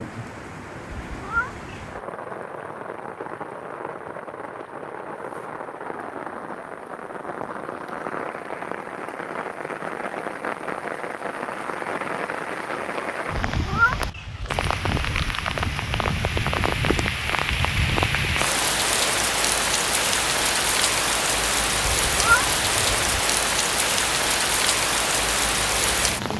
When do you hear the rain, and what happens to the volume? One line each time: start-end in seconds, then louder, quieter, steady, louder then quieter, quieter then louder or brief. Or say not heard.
0.0-26.3 louder.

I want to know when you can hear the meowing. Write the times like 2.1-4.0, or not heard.
0.9-2.0, 13.4-14.7, 21.8-23.2.